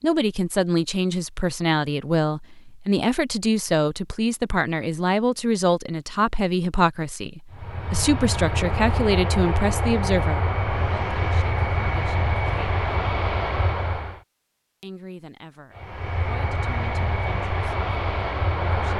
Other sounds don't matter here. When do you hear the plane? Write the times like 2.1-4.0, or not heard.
7.5-14.2, 15.8-18.9.